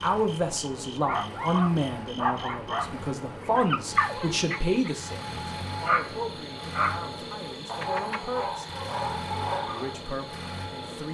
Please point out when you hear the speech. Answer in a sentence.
You can hear the speech from 0.0 to 8.7 s and from 9.7 to 11.0 s.